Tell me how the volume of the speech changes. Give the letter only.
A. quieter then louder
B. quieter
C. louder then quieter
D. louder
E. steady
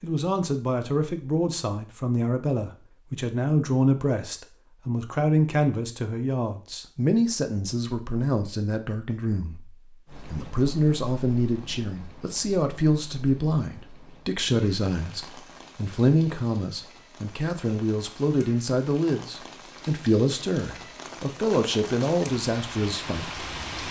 E.